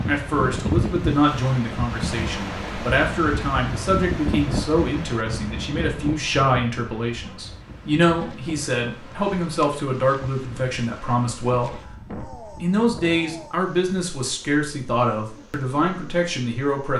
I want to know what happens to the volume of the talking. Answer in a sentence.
The volume of the talking stays about the same.